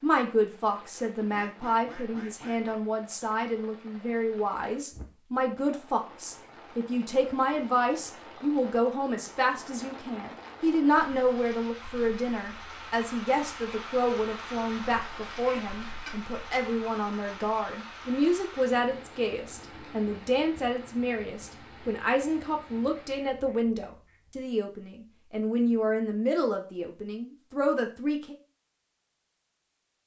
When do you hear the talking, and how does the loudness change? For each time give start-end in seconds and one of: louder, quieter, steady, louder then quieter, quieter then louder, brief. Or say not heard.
0.0-28.4 steady.